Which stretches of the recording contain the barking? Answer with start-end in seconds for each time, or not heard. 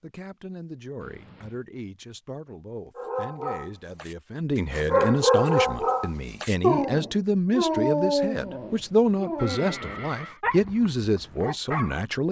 3.0-12.1.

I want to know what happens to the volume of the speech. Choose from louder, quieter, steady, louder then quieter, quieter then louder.
louder.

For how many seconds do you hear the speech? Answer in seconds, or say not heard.
12 s.